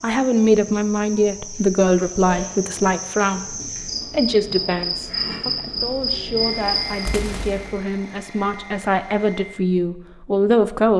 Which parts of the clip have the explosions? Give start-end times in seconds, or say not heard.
7.0-7.8.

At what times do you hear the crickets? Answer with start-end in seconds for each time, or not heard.
0.0-7.1.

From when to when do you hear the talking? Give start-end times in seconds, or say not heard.
0.0-10.9.